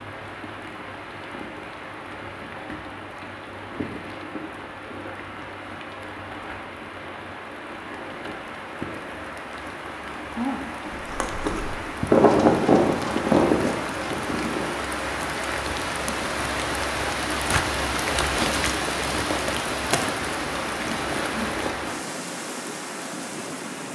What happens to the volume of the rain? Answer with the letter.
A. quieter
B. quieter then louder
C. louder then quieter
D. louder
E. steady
D.